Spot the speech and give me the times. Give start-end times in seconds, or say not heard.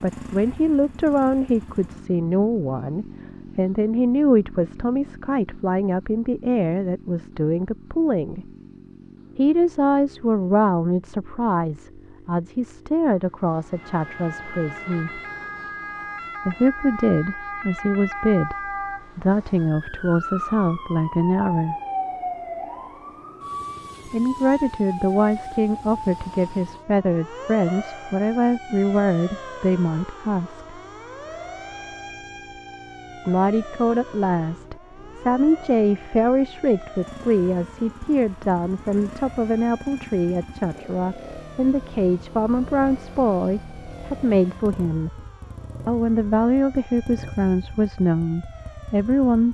0.0-8.5, 9.3-15.2, 16.4-21.8, 24.1-30.8, 33.2-45.2, 45.9-49.5.